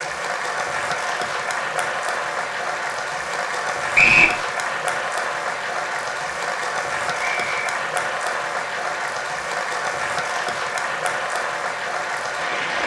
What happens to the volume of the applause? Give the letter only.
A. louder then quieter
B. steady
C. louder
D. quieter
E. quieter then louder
B.